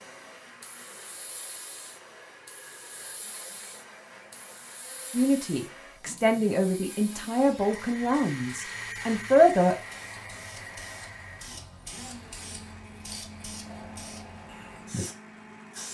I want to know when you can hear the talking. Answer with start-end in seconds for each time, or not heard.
5.1-9.8.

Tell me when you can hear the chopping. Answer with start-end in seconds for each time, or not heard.
not heard.